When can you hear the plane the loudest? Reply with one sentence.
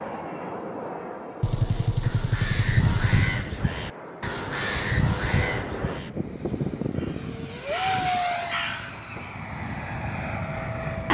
The volume of the plane peaks at 8 seconds.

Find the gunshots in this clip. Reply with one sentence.
The gunshots can be heard from 1.4 to 3.4 s.